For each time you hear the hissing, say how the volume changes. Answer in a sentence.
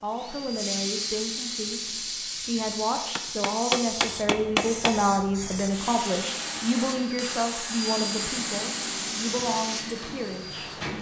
You can hear the hissing from 0.1 to 10.9 s, at a steady volume.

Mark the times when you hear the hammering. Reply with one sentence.
The hammering can be heard from 3.1 to 5.0 s.